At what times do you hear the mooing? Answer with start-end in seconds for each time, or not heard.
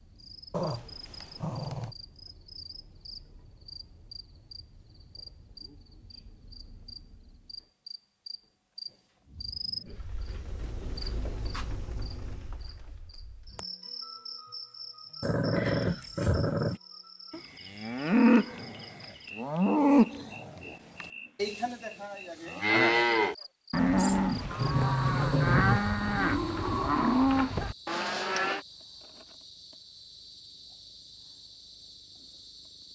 17.3-28.6.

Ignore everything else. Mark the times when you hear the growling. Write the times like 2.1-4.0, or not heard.
0.5-1.9, 15.2-16.8, 23.9-25.8.